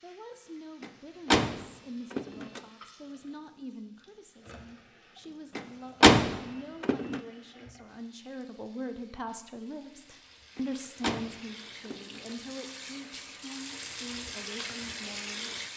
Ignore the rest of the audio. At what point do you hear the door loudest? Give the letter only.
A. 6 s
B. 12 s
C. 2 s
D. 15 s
A.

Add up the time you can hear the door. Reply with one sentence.
You can hear the door for 5 seconds altogether.